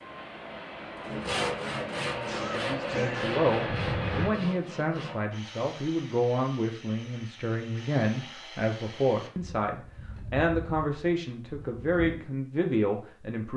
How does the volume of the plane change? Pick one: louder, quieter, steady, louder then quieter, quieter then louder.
louder.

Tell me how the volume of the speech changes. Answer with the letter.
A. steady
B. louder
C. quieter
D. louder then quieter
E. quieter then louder
A.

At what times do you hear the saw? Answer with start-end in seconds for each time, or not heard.
1.1-12.2.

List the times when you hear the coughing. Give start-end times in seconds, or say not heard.
2.2-3.3.